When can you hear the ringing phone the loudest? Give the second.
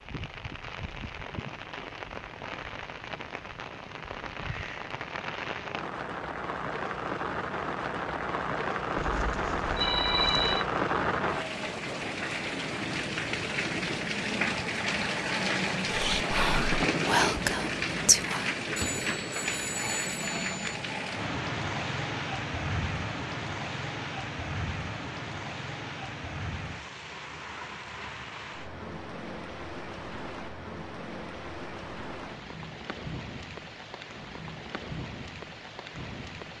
10 s.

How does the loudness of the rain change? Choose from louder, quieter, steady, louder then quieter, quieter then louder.
louder then quieter.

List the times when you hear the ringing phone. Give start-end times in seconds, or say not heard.
8.9-10.7, 18.8-20.8.